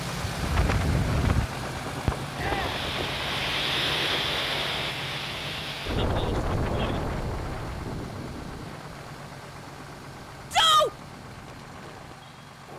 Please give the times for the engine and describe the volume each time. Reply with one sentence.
You can hear the engine from 0.0 to 12.7 s, getting quieter.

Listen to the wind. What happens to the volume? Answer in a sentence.
The loudness of the wind goes down.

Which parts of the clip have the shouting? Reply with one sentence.
The shouting can be heard from 2.4 to 2.8 s and from 10.5 to 10.9 s.